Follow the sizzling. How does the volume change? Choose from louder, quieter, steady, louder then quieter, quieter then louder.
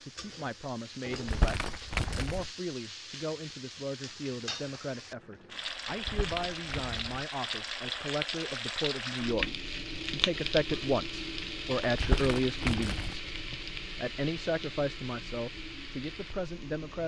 louder then quieter.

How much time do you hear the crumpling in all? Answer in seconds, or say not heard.
4 s.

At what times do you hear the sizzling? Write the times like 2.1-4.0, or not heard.
0.0-17.0.